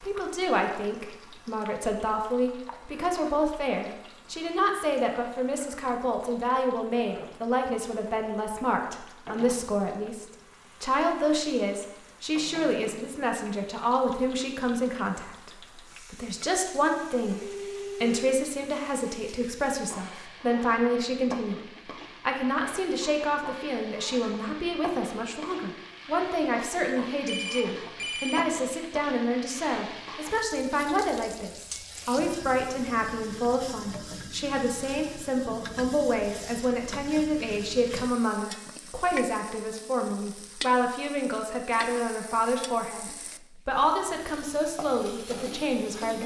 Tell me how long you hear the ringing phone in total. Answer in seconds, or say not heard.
2 s.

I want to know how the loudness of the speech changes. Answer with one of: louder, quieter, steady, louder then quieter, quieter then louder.
steady.